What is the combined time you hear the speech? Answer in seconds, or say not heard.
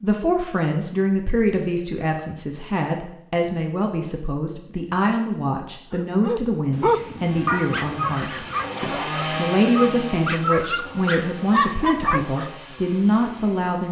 14 s.